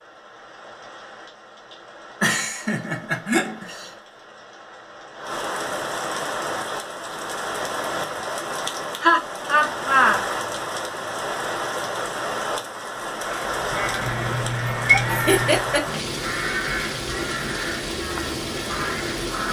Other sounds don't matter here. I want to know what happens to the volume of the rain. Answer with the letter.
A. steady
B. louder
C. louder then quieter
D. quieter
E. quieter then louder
B.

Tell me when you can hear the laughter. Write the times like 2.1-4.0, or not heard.
2.2-3.9, 9.0-10.2, 15.1-16.0.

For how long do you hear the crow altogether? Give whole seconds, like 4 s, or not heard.
6 s.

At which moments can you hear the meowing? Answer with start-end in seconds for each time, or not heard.
14.0-15.6.